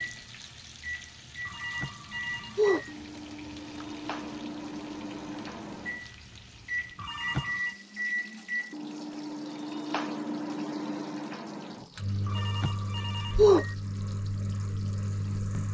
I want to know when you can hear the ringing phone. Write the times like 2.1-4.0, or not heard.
1.4-2.9, 7.0-7.7, 12.2-13.8.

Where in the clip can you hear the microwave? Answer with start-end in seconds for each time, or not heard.
0.0-15.6.